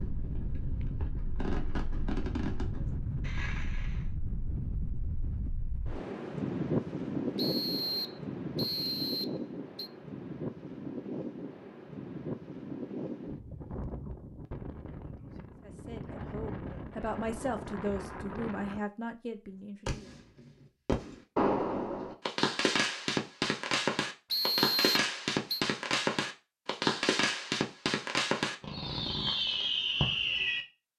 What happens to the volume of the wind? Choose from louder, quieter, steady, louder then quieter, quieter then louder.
louder then quieter.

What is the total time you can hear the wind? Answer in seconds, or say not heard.
19 s.